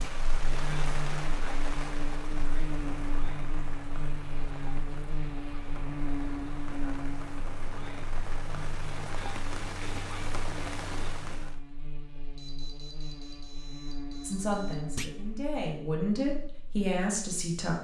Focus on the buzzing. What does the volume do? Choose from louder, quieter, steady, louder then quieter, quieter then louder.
quieter.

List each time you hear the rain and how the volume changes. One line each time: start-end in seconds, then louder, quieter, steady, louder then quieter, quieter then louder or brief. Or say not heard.
0.0-11.6 quieter then louder.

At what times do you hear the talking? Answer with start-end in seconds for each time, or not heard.
14.2-17.8.